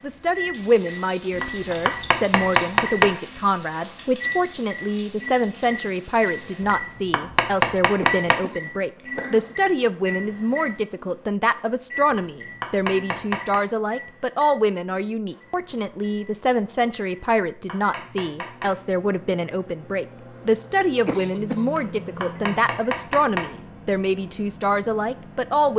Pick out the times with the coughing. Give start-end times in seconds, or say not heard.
8.0-9.6, 21.1-21.6.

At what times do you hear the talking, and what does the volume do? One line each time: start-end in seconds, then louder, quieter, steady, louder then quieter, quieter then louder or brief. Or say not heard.
0.0-25.7 steady.